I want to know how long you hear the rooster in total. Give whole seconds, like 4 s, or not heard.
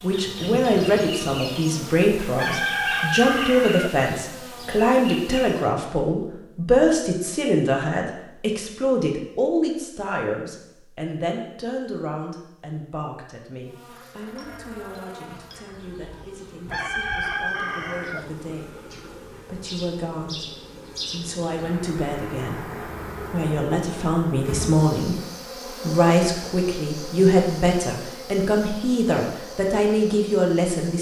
3 s.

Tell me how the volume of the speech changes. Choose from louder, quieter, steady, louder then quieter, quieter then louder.
quieter then louder.